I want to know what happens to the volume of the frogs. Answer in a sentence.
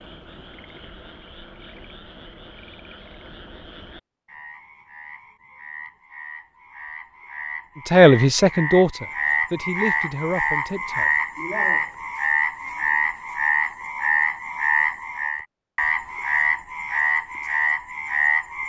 The loudness of the frogs goes up.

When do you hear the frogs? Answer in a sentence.
You can hear the frogs from 0.0 to 18.6 s.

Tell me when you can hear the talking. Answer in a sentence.
You can hear the talking from 7.8 to 11.1 s.